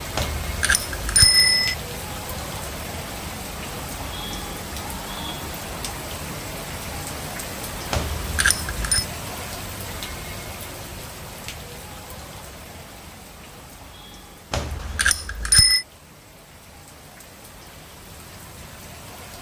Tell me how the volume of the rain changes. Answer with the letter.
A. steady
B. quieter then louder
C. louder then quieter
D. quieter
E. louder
D.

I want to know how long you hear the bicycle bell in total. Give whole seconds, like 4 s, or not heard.
4 s.